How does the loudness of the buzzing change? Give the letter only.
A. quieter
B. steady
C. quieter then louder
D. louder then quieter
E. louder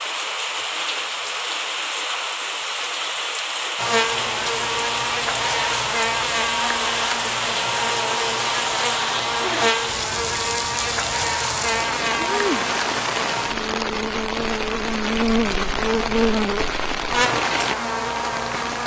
B.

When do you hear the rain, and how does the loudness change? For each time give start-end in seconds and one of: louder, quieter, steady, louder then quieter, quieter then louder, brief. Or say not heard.
0.0-18.8 steady.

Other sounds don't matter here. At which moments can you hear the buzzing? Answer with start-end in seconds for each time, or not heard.
3.8-18.8.